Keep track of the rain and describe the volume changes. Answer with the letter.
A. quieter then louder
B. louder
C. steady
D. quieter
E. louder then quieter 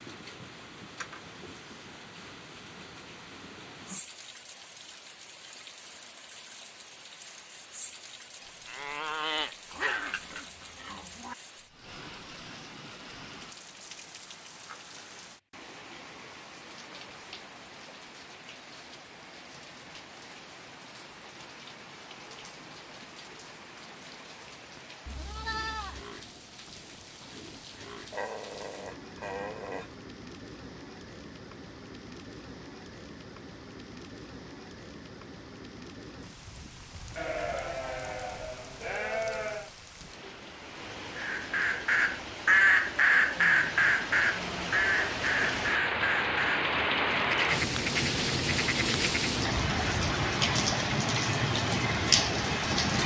B.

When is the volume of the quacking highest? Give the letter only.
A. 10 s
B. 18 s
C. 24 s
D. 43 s
D.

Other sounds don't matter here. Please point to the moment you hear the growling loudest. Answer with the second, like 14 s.
10 s.